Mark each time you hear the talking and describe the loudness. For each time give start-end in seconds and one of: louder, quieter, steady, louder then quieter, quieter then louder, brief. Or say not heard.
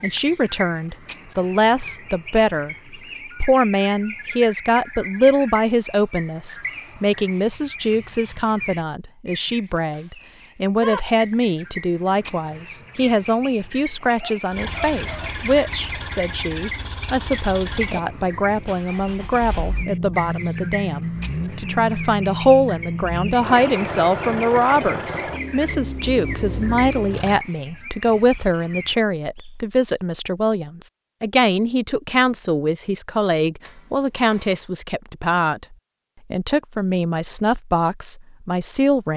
0.0-39.1 steady.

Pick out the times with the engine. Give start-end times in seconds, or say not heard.
14.5-27.4.